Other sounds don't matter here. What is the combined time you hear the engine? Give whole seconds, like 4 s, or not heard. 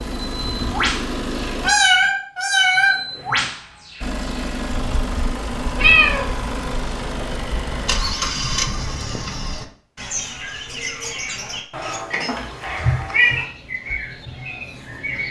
7 s.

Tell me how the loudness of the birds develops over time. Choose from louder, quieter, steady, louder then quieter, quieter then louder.
quieter then louder.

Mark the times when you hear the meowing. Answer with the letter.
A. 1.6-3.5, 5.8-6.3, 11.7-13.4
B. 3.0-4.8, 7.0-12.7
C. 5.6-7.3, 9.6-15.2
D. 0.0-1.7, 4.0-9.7
A.